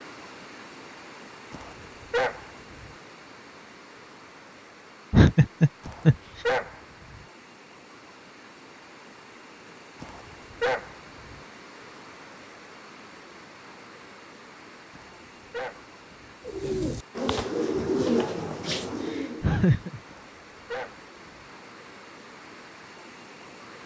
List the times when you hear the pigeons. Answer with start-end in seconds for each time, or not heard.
16.4-19.4.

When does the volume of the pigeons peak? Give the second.
18 s.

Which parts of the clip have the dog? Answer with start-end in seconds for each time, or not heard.
1.5-2.9, 5.8-7.2, 10.0-11.4, 14.9-16.4, 20.1-21.5.